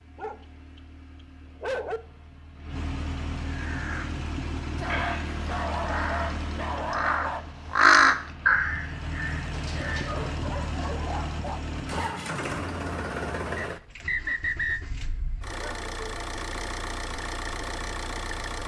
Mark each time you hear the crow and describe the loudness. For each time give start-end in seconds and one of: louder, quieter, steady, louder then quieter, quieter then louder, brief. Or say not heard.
3.5-4.0 brief
4.8-10.2 louder then quieter.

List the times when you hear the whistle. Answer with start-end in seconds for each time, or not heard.
13.6-14.8.